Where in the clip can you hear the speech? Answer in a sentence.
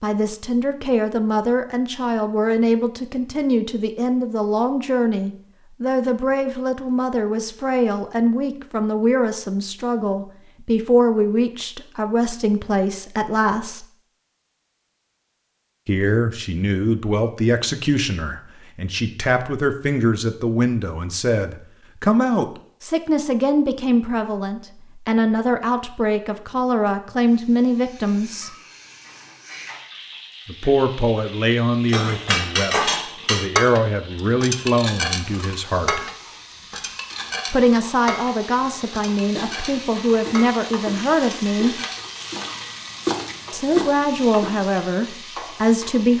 The speech can be heard from 0.0 to 13.8 s, from 15.8 to 28.5 s, from 30.4 to 36.1 s, from 37.5 to 41.8 s and from 43.5 to 46.1 s.